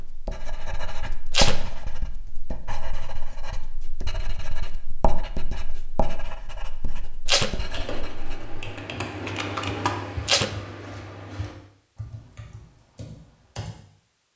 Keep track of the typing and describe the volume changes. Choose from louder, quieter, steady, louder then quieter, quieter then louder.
louder then quieter.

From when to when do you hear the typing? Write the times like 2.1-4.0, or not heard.
7.5-13.8.